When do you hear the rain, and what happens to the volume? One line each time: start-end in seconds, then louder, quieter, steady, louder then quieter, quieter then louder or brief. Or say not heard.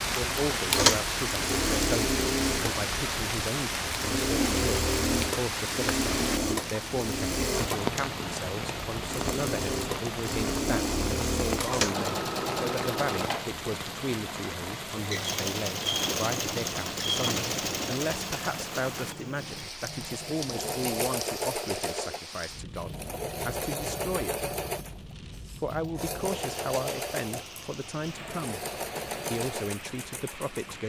0.0-30.8 quieter.